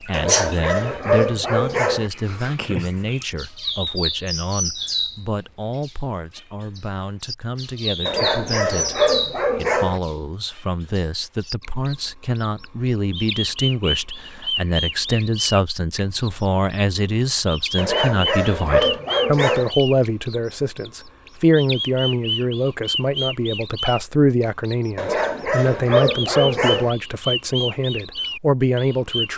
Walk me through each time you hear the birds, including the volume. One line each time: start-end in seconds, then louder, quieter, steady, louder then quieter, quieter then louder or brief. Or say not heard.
0.0-29.3 steady.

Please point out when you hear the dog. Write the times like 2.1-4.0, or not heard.
0.1-2.1, 8.1-10.0, 17.8-19.7, 24.9-26.9.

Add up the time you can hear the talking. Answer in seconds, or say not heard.
29 s.